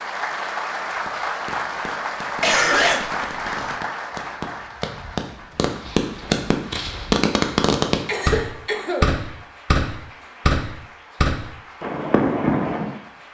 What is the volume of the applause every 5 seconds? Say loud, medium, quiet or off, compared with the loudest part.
loud, quiet, quiet.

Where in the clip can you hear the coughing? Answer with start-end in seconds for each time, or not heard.
2.4-3.8, 8.1-9.2.